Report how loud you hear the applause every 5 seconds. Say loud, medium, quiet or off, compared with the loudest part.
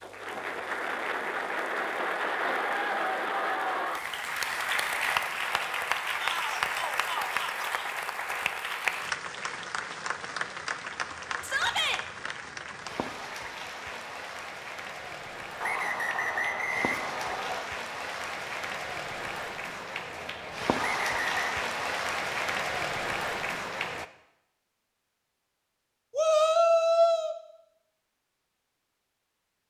loud, loud, medium, medium, loud, off.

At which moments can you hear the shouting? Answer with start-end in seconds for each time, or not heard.
6.2-7.7, 11.4-12.0, 26.1-27.4.